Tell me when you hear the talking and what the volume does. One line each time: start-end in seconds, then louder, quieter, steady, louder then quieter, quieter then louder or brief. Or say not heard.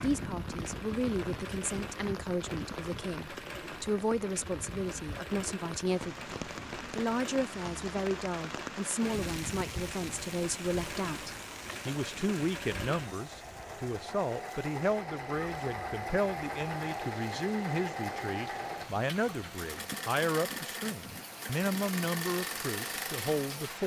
0.0-23.8 steady.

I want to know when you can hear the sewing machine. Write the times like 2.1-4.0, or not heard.
0.0-23.8.